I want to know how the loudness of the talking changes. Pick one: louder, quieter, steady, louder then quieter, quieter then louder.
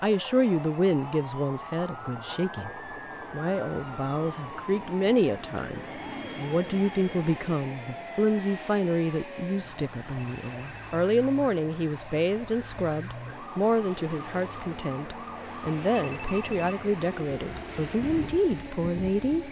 steady.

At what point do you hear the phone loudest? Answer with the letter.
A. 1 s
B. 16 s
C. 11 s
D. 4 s
B.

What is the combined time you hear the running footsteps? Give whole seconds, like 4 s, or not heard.
not heard.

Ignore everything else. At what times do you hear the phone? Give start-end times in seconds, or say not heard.
0.4-1.1, 10.2-11.1, 15.9-16.9.